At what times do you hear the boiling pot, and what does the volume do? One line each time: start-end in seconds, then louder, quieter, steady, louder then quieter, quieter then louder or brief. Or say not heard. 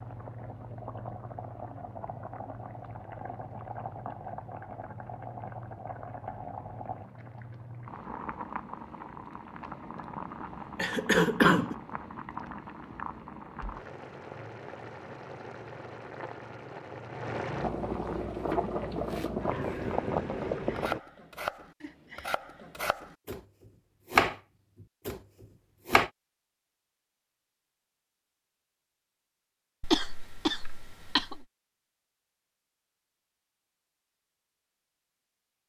0.0-21.0 louder.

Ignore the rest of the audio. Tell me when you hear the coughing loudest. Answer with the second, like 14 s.
11 s.